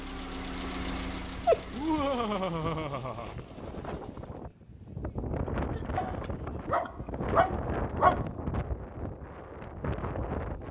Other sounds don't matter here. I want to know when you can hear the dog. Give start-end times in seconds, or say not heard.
1.3-3.5, 6.0-8.2.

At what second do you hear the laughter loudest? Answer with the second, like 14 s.
2 s.